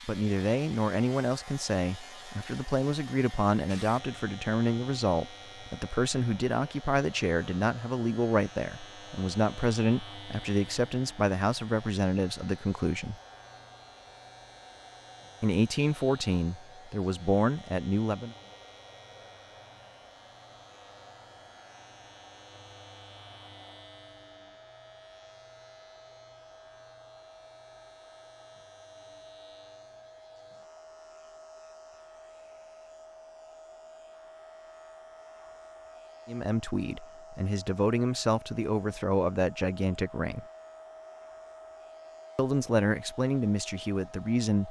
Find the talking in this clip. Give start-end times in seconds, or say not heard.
0.1-13.2, 15.4-18.4, 36.2-40.5, 42.4-44.6.